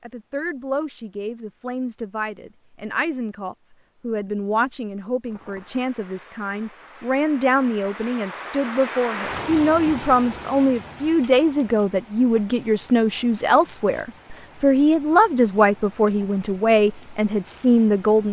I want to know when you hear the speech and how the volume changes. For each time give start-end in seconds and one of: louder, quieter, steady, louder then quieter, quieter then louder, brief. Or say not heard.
0.0-18.2 louder.